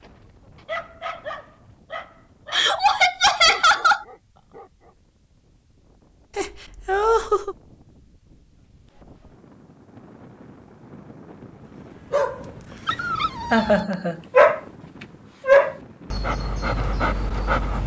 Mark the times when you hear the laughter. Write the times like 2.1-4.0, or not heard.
2.5-4.0, 6.3-7.5, 13.5-14.2.